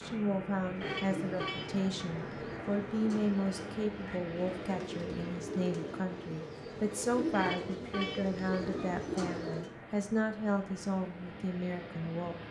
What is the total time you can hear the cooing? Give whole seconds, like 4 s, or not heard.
9 s.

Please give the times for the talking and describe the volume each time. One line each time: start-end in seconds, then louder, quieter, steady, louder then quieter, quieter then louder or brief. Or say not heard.
0.0-12.4 steady.